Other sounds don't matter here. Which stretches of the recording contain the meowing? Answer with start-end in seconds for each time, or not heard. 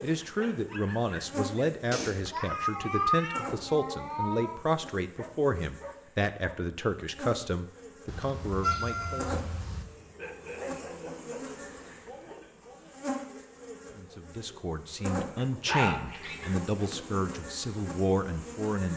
1.9-4.6, 8.1-9.8, 15.9-16.6.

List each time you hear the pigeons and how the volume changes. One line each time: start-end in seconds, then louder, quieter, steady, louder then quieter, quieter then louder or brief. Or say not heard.
not heard.